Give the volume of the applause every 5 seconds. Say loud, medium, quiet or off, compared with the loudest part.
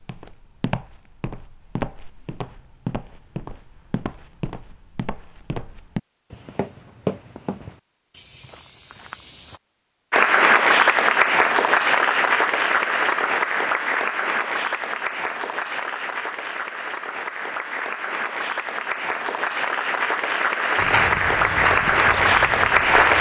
off, off, loud, medium, loud.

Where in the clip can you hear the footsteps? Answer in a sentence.
You can hear the footsteps from 0.0 to 9.6 s and from 20.8 to 23.1 s.